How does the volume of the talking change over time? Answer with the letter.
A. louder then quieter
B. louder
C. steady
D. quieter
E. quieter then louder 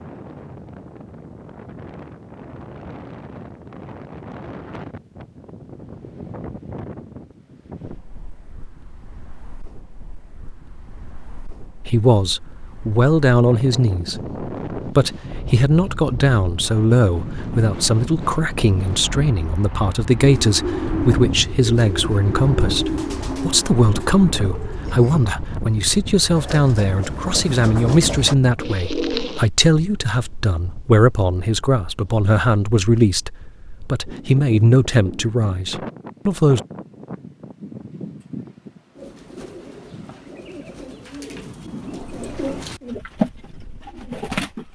C.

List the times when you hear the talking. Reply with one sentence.
You can hear the talking from 11.8 to 36.6 s.